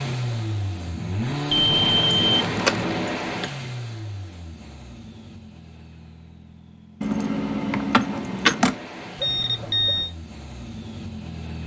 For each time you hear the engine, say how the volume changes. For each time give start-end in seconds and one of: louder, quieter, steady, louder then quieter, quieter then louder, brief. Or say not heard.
0.0-11.6 quieter then louder.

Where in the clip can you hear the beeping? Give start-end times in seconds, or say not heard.
1.5-2.5, 9.2-10.1.